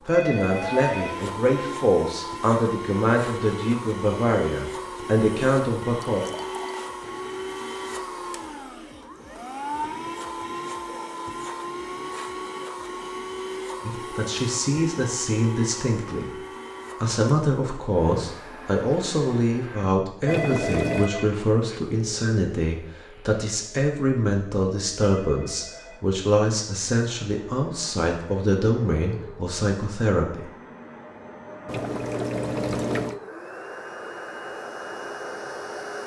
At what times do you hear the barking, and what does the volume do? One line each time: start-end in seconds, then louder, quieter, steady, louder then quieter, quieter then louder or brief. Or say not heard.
not heard.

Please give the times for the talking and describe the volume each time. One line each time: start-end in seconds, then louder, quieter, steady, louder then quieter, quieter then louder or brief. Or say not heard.
0.0-6.2 steady
13.8-16.4 brief
17.0-30.4 steady.